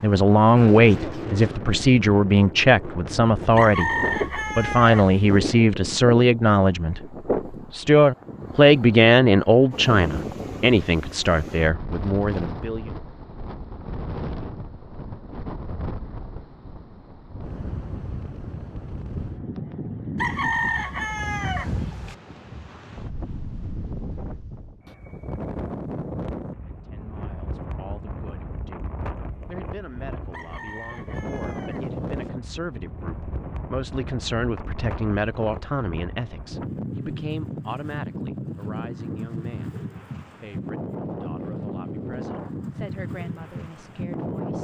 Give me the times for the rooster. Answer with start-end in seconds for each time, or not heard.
3.5-5.5, 20.1-22.1, 30.3-32.3.